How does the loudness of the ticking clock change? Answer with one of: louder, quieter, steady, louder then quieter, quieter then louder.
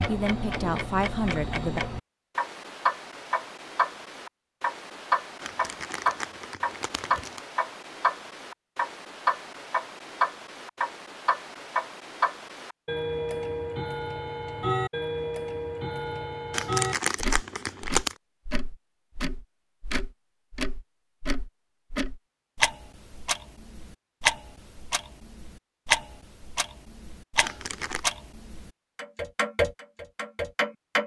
steady.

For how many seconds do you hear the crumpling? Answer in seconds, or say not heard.
4 s.